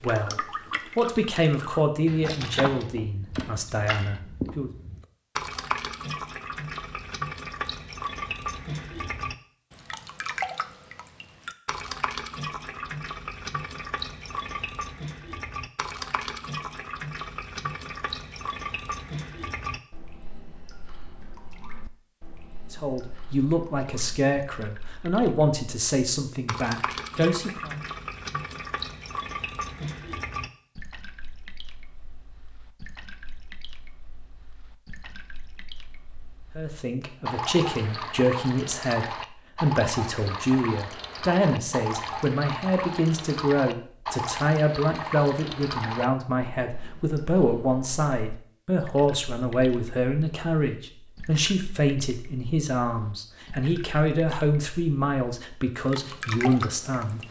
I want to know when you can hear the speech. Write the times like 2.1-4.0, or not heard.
0.0-4.7, 22.7-27.8, 36.5-57.2.